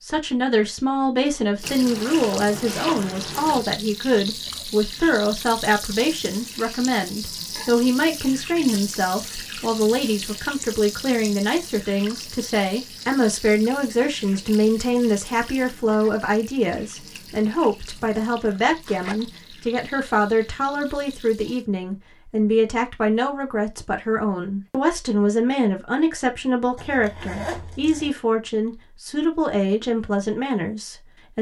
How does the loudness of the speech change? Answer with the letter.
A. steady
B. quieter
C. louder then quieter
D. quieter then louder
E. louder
A.